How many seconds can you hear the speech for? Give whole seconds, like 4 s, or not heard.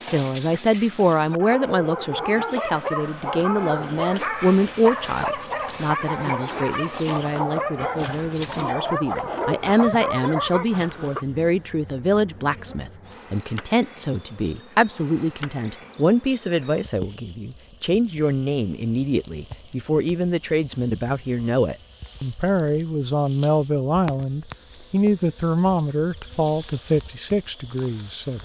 28 s.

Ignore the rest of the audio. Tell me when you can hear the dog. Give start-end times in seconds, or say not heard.
0.0-11.2.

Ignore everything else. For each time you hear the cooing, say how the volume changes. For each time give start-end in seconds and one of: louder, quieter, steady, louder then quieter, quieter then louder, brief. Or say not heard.
not heard.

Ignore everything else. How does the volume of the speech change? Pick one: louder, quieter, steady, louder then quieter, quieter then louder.
steady.